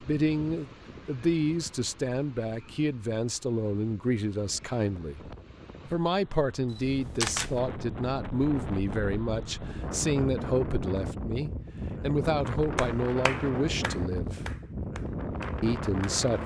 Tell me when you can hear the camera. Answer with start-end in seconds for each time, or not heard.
6.7-7.5.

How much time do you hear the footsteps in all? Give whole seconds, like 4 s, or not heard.
not heard.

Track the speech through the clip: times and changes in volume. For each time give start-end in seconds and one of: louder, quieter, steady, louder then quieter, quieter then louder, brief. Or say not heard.
0.0-14.4 steady
15.6-16.4 brief.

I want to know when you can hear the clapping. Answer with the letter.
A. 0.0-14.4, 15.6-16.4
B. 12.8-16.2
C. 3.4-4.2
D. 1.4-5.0
B.